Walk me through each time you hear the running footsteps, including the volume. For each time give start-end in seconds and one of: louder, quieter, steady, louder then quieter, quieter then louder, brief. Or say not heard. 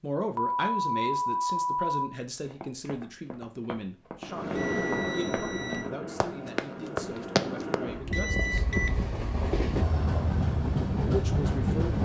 2.3-7.8 louder.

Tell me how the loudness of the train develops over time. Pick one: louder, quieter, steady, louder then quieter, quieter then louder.
quieter then louder.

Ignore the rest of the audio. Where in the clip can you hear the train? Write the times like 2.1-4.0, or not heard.
4.2-11.9.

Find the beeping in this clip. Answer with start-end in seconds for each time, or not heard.
0.3-2.1, 4.5-5.8, 8.1-8.9.